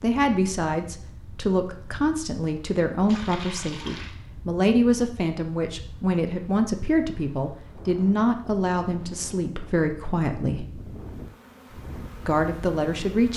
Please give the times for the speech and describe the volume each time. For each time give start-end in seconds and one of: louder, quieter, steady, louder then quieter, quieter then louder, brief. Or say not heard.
0.0-10.7 steady
12.2-13.3 brief.